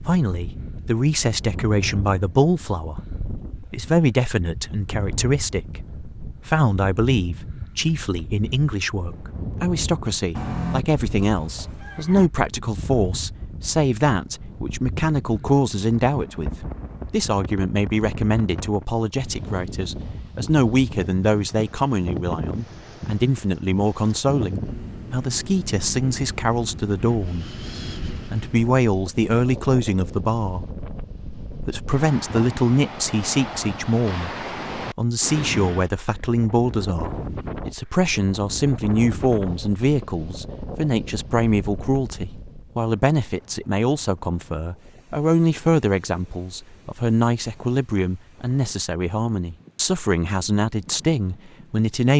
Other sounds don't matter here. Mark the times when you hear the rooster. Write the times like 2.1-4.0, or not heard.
10.3-12.3.